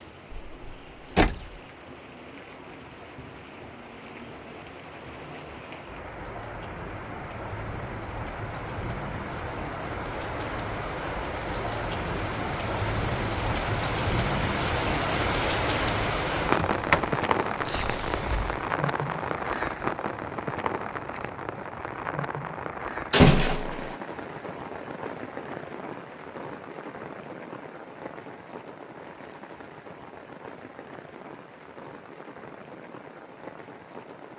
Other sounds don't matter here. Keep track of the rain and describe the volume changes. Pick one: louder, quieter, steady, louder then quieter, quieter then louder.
louder then quieter.